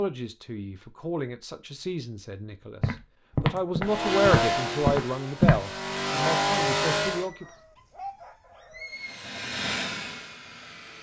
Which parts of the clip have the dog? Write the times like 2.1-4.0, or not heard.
7.2-9.2.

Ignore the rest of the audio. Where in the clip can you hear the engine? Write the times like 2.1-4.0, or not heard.
3.8-7.3, 8.8-10.9.